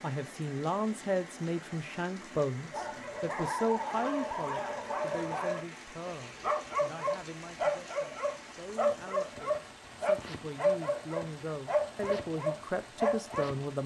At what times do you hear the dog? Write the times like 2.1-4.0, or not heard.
2.7-13.5.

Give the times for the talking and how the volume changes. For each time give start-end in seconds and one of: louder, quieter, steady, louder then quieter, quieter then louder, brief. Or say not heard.
0.0-13.8 quieter then louder.